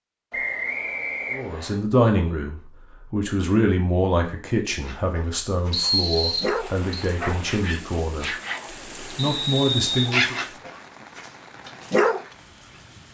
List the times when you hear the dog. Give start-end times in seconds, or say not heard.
4.8-12.2.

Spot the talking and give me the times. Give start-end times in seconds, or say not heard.
1.3-8.3, 8.9-10.3.